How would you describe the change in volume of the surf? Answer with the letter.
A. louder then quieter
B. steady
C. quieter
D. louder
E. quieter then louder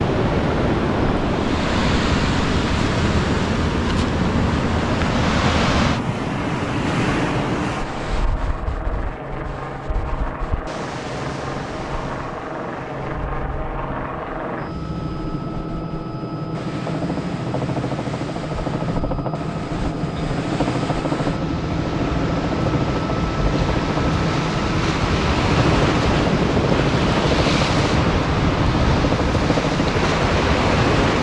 E.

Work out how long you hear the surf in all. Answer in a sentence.
The surf can be heard for 31 seconds in total.